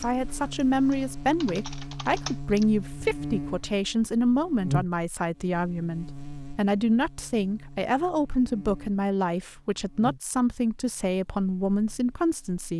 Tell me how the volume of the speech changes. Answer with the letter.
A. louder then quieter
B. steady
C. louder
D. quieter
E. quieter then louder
B.